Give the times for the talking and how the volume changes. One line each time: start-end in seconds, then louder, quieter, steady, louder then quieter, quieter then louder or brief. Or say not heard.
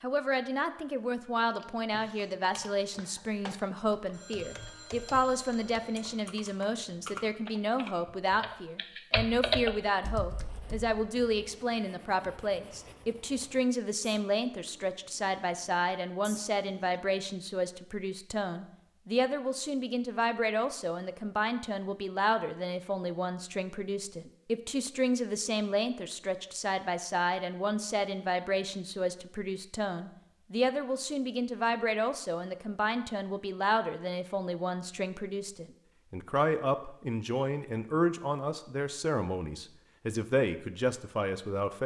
0.0-41.8 steady.